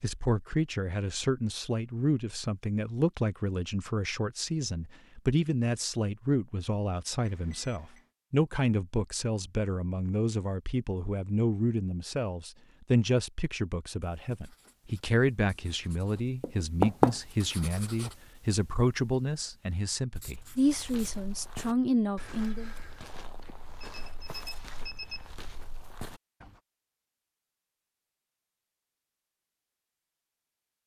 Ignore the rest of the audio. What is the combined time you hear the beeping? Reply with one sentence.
You can hear the beeping for 3 seconds altogether.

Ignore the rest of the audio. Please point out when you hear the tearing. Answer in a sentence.
The tearing can't be heard in this clip.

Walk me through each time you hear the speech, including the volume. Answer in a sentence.
You can hear the speech from 0.0 to 22.7 s, at a steady volume.